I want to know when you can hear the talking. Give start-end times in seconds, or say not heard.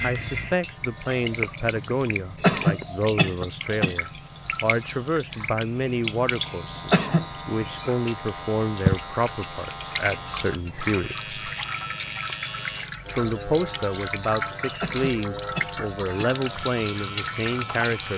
0.0-11.3, 13.1-18.1.